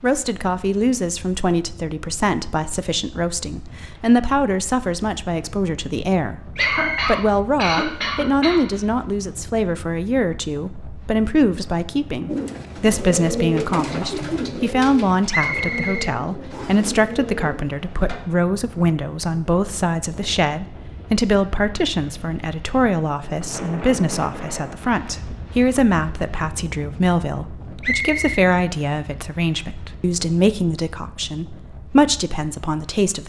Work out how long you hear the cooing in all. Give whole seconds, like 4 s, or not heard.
6 s.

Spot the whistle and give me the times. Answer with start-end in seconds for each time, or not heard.
6.5-7.1, 15.3-16.9, 27.8-28.2.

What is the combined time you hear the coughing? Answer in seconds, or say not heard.
2 s.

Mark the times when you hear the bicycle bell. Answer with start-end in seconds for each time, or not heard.
not heard.